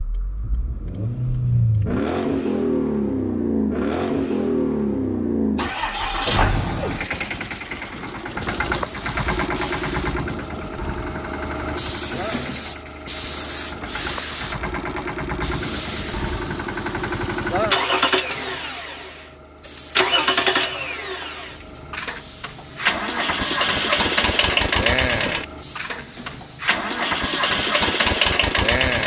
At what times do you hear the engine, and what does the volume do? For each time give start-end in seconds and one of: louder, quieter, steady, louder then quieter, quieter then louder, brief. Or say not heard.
0.0-29.0 quieter then louder.